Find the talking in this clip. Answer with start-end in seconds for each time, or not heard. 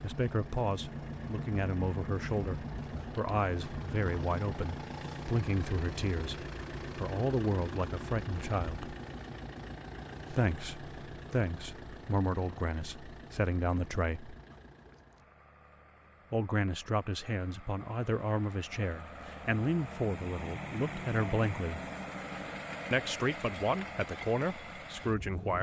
0.0-8.9, 10.3-14.3, 16.3-21.8, 22.9-25.5.